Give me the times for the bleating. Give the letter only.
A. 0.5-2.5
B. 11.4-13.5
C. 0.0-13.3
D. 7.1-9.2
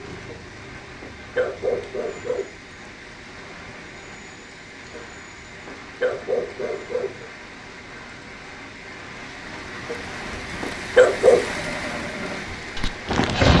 B.